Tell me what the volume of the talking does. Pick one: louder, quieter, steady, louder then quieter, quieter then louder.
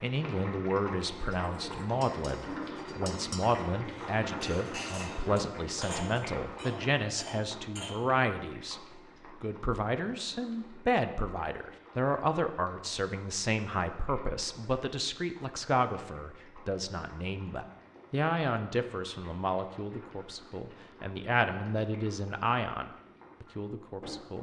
steady.